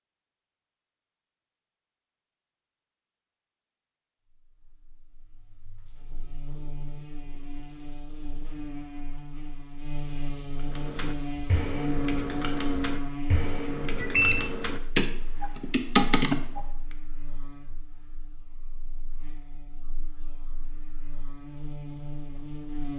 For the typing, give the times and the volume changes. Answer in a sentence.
The typing can be heard from 10.7 to 16.6 s, getting louder.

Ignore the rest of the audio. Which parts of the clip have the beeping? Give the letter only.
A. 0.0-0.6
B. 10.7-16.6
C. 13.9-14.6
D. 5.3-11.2
C.